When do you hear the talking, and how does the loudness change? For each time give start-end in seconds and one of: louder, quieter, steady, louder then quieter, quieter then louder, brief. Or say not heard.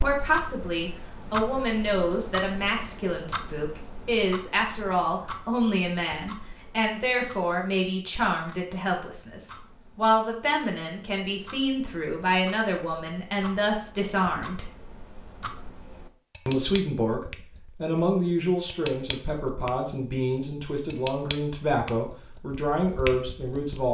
0.0-14.7 steady
16.4-23.8 steady.